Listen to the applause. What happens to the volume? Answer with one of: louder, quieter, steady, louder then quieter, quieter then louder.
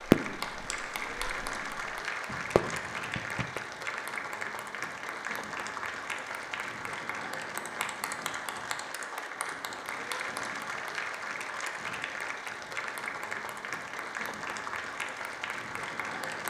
steady.